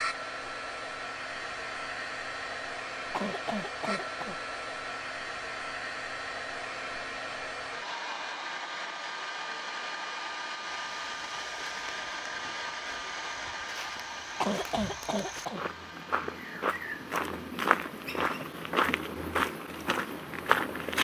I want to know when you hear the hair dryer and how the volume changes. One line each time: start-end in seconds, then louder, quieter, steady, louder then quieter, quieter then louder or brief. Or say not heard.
0.0-20.6 quieter.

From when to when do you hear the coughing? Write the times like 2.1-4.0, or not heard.
3.1-4.3, 14.4-15.6.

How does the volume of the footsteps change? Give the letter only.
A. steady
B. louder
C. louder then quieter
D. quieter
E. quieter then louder
B.